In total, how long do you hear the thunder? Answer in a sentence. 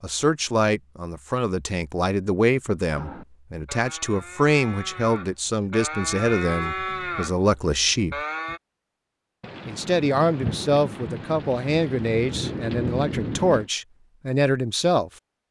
You can hear the thunder for 4 seconds altogether.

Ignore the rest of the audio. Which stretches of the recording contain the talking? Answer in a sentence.
The talking can be heard from 0.0 to 8.2 s and from 9.7 to 15.1 s.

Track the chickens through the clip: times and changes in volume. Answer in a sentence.
The chickens can't be heard in this clip.